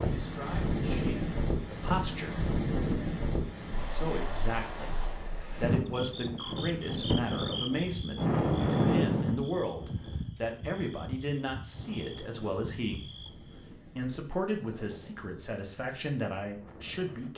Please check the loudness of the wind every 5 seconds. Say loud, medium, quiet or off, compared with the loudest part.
loud, loud, quiet, quiet.